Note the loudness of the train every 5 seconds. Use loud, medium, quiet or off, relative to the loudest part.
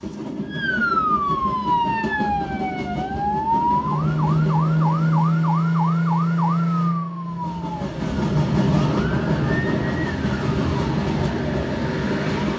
medium, loud, loud.